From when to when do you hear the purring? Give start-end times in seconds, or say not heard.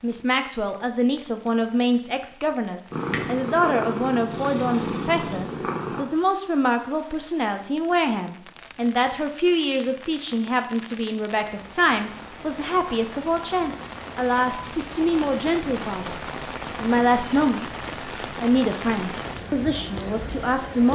2.9-6.0.